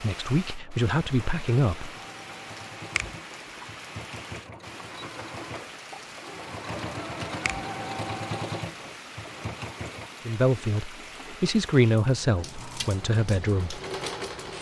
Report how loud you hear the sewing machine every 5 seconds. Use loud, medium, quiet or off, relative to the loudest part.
medium, loud, loud.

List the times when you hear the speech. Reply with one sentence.
You can hear the speech from 0.0 to 1.9 s and from 10.2 to 13.8 s.